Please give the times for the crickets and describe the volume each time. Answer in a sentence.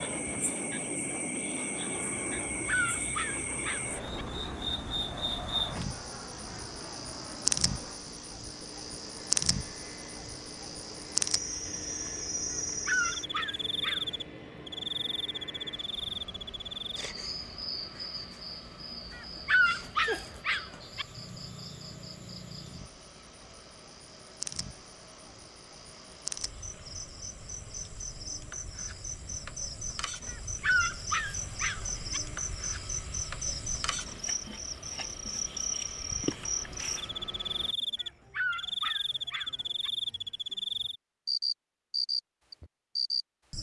The crickets can be heard from 0.0 to 43.5 s, getting quieter then louder.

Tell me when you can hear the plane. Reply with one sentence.
The plane can be heard from 0.0 to 37.8 s.